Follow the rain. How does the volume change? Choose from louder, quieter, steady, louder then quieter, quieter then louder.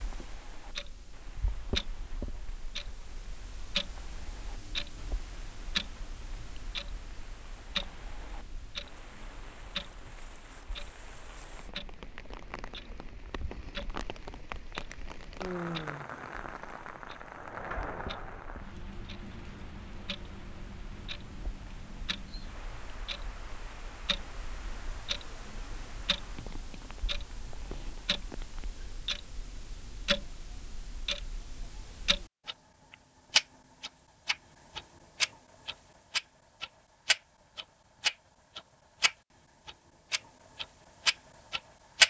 louder then quieter.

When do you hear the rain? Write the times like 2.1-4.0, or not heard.
0.0-28.7.